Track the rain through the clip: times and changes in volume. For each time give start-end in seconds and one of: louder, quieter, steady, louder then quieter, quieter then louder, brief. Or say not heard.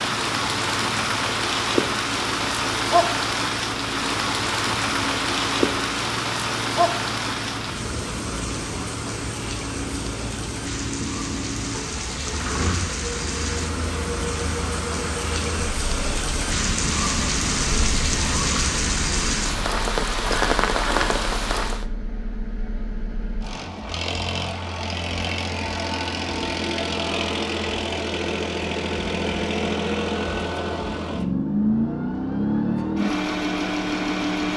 0.0-21.9 quieter then louder.